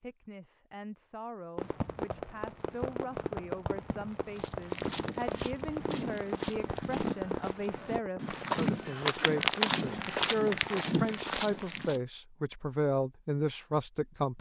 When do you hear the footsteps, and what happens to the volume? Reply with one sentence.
You can hear the footsteps from 4.3 to 12.0 s, getting louder.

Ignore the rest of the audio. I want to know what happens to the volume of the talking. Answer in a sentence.
The volume of the talking goes up.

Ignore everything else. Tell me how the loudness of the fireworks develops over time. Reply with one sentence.
The loudness of the fireworks goes down.